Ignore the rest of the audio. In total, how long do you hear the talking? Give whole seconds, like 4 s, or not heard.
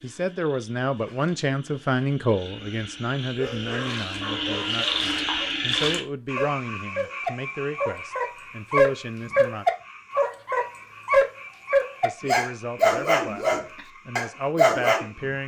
13 s.